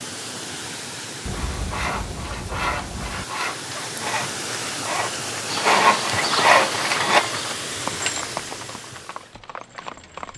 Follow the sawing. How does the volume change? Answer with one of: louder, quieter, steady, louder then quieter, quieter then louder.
louder.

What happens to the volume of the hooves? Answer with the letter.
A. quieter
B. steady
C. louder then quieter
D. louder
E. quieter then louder
A.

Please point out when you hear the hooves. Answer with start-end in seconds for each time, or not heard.
5.5-10.3.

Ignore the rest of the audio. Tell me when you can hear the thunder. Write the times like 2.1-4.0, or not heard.
1.2-3.2.